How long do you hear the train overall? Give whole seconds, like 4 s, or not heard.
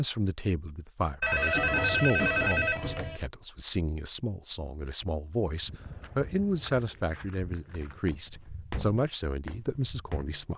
not heard.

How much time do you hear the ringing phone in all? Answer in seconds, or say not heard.
2 s.